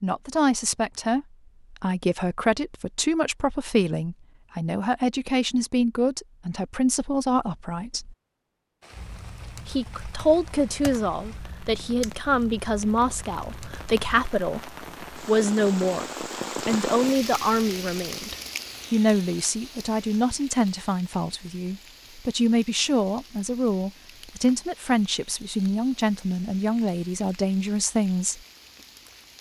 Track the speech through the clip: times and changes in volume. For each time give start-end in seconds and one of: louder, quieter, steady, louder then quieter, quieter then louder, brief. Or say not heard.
0.0-8.2 steady
9.7-28.4 steady.